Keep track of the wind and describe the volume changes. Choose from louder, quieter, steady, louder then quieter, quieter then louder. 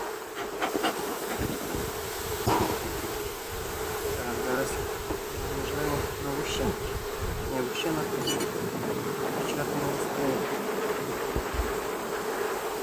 louder.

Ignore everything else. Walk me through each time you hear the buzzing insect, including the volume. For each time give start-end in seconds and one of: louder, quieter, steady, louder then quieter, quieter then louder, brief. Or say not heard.
0.0-12.7 steady.